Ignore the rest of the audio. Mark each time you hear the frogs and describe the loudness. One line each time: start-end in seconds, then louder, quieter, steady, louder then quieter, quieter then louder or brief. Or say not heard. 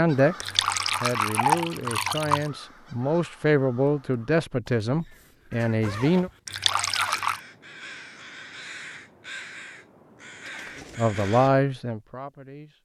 not heard.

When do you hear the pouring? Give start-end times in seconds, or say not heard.
0.4-2.5, 6.5-7.4.